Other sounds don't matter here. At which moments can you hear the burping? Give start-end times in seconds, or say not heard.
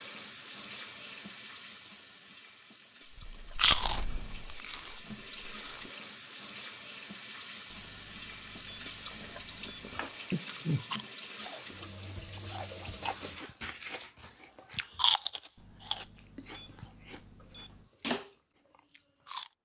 10.3-10.8.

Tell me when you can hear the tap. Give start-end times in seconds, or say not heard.
0.0-13.4.